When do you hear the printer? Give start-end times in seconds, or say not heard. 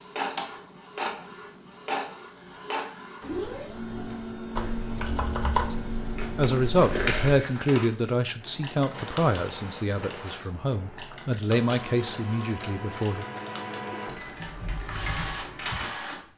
0.0-16.3.